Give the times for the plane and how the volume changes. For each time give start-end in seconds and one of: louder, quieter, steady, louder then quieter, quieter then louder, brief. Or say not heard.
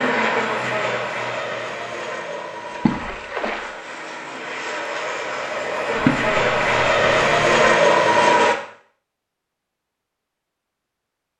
0.0-8.6 quieter then louder.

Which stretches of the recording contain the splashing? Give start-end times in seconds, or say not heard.
2.7-3.8, 6.0-7.7.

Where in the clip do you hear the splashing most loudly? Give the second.
6 s.